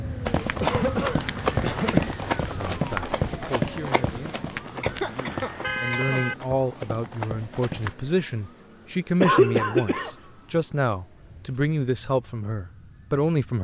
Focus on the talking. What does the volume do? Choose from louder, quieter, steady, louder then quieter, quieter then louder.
louder.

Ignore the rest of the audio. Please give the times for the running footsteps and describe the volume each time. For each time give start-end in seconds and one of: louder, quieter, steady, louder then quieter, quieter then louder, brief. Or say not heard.
0.2-8.0 quieter.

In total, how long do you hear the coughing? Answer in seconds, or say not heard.
4 s.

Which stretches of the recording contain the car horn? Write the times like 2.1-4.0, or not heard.
5.0-6.3.